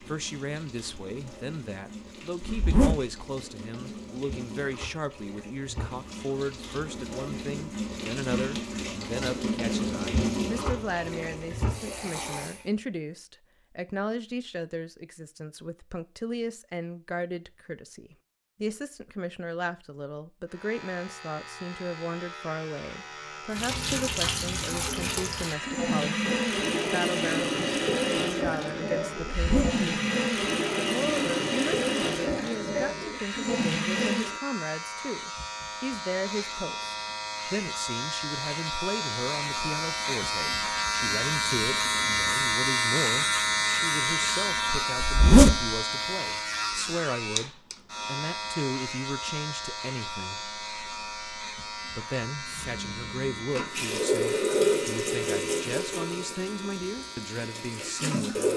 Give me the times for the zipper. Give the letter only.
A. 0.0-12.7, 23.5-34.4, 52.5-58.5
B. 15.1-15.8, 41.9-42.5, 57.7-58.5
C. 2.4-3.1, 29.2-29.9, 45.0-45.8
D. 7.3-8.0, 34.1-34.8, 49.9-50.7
C.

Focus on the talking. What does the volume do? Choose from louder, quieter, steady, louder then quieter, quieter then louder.
steady.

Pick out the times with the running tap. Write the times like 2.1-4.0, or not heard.
0.0-12.7, 23.5-34.4, 52.5-58.5.